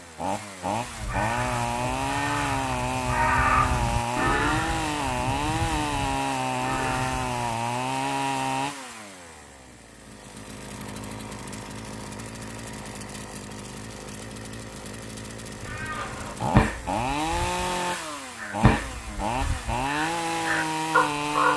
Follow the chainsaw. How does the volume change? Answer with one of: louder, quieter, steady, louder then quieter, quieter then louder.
quieter then louder.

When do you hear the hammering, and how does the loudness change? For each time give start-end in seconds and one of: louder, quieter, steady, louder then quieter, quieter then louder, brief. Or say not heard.
not heard.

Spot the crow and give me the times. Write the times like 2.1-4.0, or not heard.
0.8-7.4, 15.6-21.5.